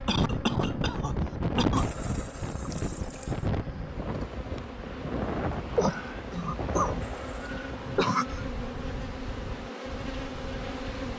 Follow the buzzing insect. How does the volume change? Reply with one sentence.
The loudness of the buzzing insect goes up.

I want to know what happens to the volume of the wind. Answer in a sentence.
The loudness of the wind goes down.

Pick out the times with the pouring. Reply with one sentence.
The pouring can be heard from 1.8 to 3.5 s and from 7.0 to 7.6 s.